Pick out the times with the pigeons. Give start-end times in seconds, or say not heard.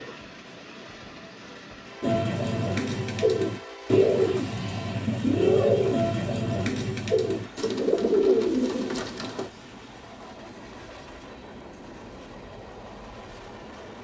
2.0-9.5.